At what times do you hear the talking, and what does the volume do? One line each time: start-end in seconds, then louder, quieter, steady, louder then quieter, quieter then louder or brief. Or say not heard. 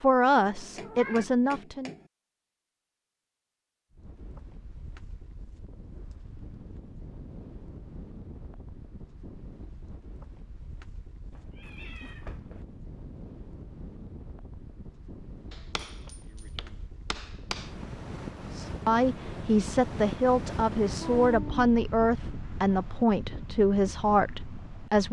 0.0-1.9 brief
18.6-25.0 steady.